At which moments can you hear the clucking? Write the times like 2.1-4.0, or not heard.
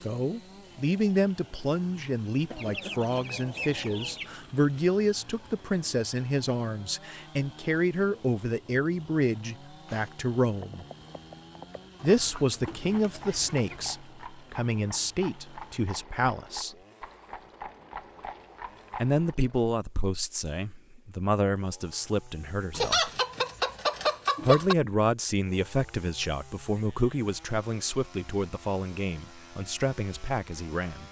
2.5-4.3, 11.9-13.9, 22.7-24.8.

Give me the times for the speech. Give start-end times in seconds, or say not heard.
0.0-10.8, 12.0-16.8, 19.0-23.1, 24.4-31.0.